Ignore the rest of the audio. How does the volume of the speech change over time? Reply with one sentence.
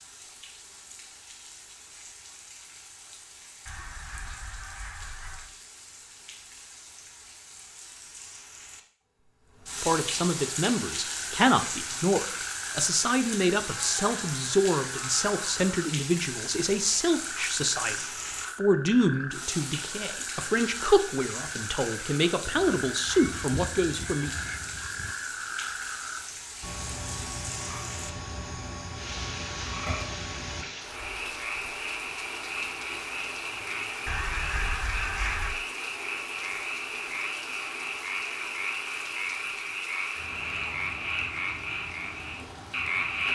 The volume of the speech stays about the same.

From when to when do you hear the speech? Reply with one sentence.
The speech can be heard from 9.8 to 24.3 s.